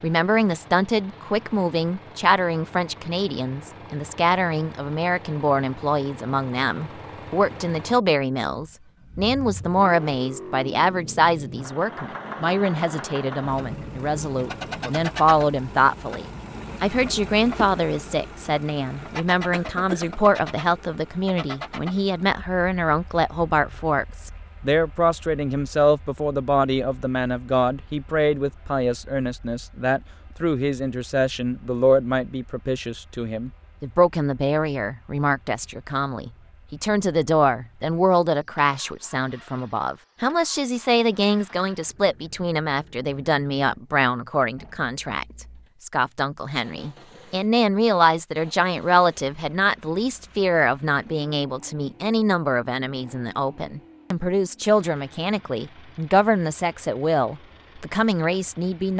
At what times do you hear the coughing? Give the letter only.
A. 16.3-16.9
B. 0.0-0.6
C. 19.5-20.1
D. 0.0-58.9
C.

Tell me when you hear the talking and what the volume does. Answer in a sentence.
The talking can be heard from 0.0 to 58.9 s, at a steady volume.